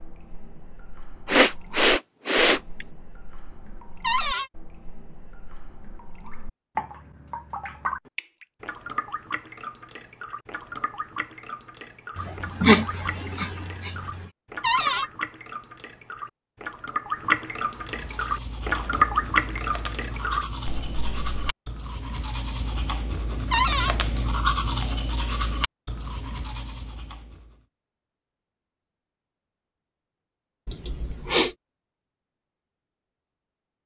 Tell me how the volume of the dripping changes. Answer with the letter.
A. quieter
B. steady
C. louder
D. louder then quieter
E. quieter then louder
C.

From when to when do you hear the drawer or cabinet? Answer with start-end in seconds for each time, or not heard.
4.0-4.5, 14.6-15.1, 23.5-23.9.